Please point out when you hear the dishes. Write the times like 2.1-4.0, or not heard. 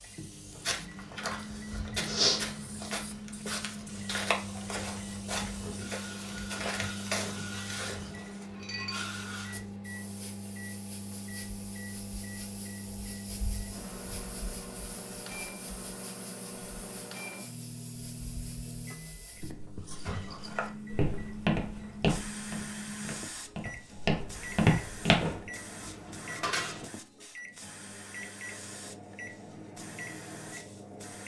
8.6-9.1, 25.2-26.9.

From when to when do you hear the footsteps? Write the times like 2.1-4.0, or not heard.
0.5-8.2, 19.9-25.3.